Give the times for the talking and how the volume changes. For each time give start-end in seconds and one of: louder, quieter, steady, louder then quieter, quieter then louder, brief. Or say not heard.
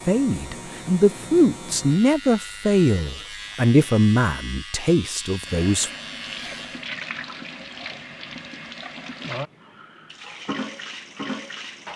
0.1-5.9 quieter.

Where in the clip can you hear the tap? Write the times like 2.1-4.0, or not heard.
5.5-11.9.